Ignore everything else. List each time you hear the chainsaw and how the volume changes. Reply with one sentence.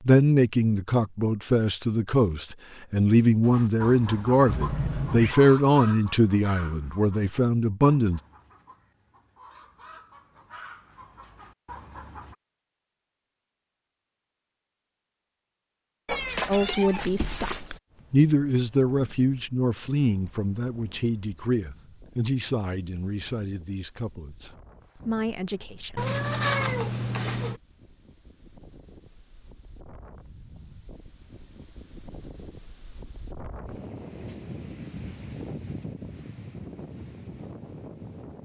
You can't hear the chainsaw here.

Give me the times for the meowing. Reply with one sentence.
You can hear the meowing from 4.5 to 5.3 s, from 16.1 to 17.8 s and from 25.9 to 27.6 s.